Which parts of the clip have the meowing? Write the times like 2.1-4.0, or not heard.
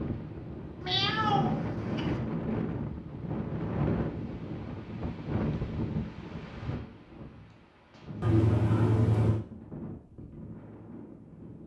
0.8-2.1, 8.2-9.4.